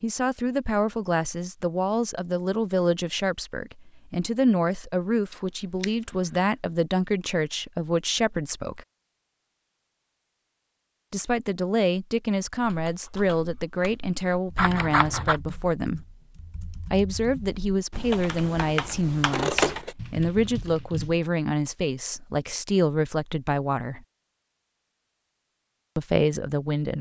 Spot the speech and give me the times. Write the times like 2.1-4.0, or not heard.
0.0-8.8, 11.1-16.1, 16.9-24.0, 25.9-26.9.